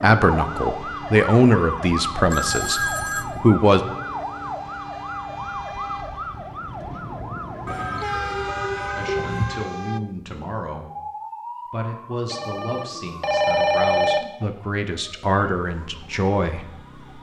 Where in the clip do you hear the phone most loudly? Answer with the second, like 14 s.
14 s.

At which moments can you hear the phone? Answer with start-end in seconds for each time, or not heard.
2.3-3.2, 7.7-9.6, 12.3-14.2.